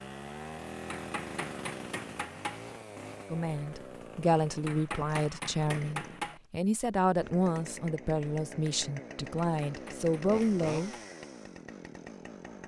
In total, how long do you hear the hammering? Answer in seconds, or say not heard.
5 s.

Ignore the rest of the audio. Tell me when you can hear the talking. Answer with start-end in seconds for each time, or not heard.
3.3-10.9.